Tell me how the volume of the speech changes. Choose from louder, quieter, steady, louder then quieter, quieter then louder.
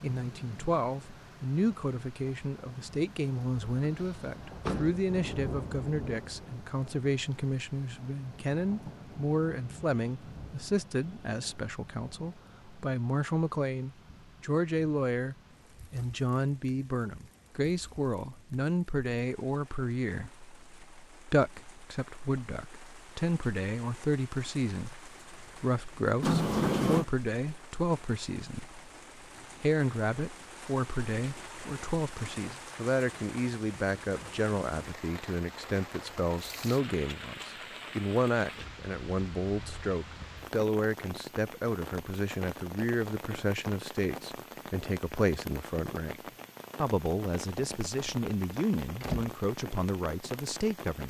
steady.